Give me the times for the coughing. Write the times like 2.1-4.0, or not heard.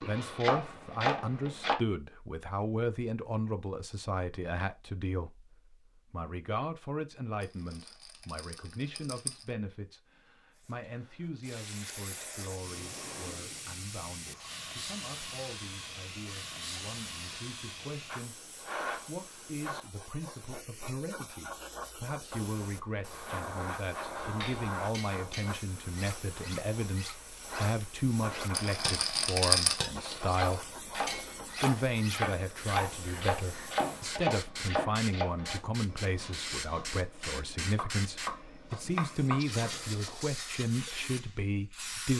not heard.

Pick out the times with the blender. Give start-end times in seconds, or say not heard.
not heard.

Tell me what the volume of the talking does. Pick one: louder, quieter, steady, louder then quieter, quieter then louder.
quieter then louder.